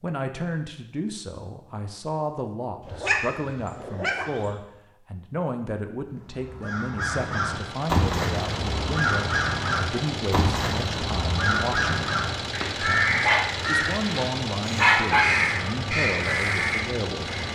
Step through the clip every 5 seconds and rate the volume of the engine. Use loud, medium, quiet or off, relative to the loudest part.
off, loud, loud, loud.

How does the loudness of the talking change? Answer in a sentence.
The volume of the talking stays about the same.